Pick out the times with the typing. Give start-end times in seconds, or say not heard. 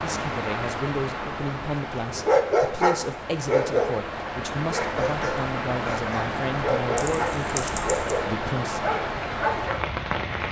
7.0-8.2.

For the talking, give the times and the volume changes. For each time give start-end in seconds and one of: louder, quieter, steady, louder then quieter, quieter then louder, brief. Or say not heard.
0.0-8.8 steady.